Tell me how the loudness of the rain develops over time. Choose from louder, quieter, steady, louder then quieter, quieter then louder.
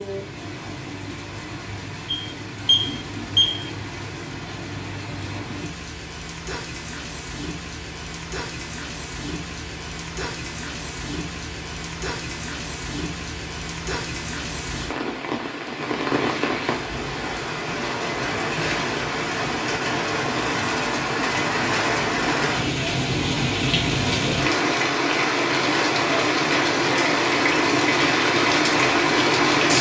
louder.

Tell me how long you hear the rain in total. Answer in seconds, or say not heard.
30 s.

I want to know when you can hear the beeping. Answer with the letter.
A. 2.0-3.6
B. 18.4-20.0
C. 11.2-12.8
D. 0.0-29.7
A.